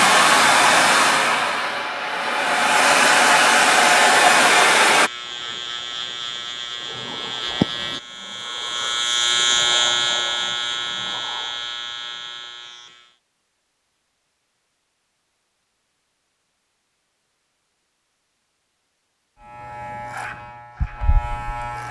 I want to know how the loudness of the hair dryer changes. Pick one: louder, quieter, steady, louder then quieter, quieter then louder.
quieter then louder.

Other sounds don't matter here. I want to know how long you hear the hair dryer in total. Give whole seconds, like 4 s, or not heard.
5 s.